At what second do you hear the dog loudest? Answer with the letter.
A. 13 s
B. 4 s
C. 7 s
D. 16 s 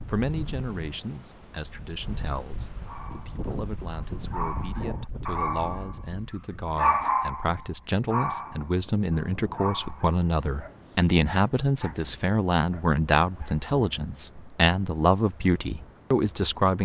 C.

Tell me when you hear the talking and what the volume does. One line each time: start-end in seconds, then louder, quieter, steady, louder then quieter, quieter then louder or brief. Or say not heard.
0.1-16.8 louder.